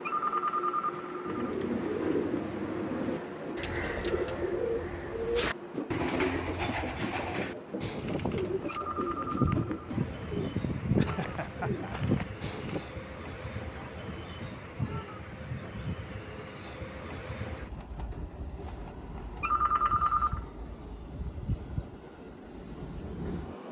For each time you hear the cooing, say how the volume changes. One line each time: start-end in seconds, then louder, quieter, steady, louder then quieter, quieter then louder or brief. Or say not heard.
1.2-12.8 steady.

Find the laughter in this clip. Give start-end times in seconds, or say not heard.
10.9-12.0.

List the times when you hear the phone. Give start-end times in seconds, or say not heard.
0.0-1.6, 8.7-9.8, 19.4-20.4.